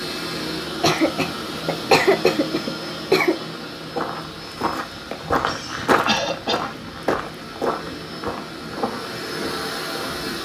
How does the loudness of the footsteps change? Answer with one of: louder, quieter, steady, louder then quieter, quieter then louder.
louder then quieter.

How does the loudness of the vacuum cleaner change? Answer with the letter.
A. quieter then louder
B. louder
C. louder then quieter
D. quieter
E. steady
A.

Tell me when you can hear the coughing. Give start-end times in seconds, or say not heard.
0.7-3.4, 6.0-6.7.